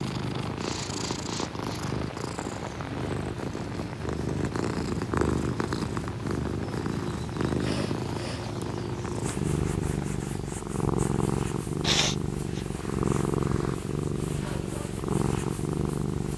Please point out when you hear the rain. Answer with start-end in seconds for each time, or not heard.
0.0-10.3.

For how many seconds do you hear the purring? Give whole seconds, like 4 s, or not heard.
16 s.